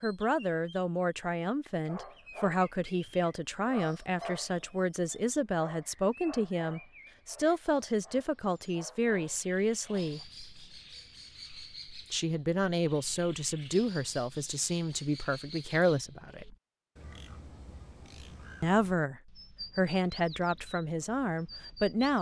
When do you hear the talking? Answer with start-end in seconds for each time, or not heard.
0.0-10.2, 12.1-16.6, 18.6-22.1.